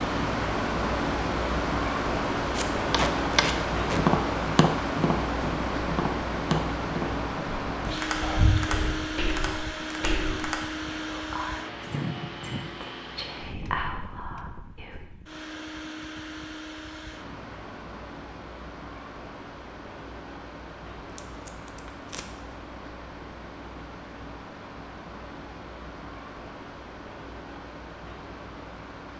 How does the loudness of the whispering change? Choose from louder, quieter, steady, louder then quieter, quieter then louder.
quieter then louder.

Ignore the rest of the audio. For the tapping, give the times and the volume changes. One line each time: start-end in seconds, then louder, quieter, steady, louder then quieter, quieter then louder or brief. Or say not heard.
2.9-10.7 quieter.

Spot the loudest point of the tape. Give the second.
3 s.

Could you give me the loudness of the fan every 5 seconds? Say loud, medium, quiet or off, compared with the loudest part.
loud, loud, medium, quiet, quiet, quiet.